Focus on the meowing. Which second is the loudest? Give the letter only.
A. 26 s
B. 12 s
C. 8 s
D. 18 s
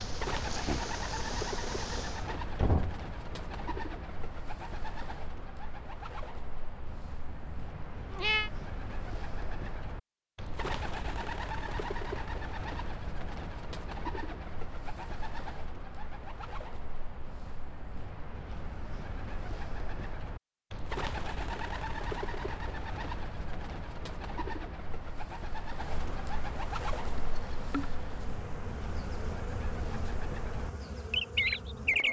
C.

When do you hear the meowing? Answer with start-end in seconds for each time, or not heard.
7.0-8.5.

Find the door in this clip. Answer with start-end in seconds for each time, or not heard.
2.2-3.0.